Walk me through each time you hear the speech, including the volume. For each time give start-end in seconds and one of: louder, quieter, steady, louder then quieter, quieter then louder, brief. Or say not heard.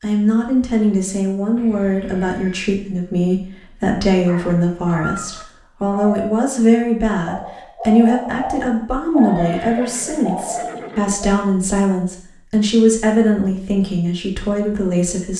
0.0-15.3 steady.